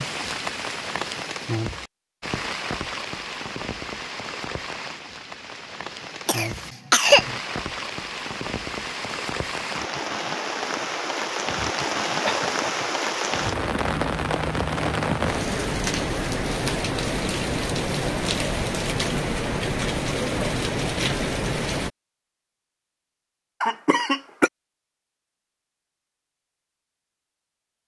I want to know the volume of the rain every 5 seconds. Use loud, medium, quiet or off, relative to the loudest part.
medium, medium, loud, loud, loud, off.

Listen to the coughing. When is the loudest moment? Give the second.
7 s.